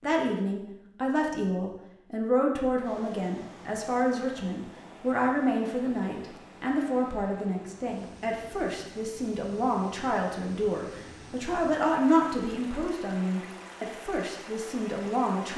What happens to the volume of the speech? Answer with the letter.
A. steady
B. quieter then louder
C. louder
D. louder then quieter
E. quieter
A.